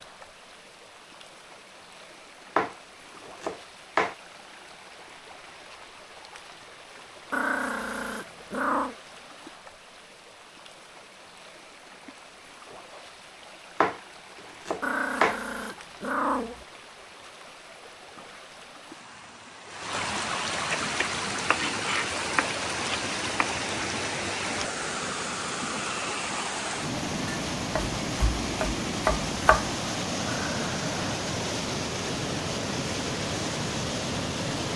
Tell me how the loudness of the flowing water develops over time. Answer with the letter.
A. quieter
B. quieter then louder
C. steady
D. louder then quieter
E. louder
E.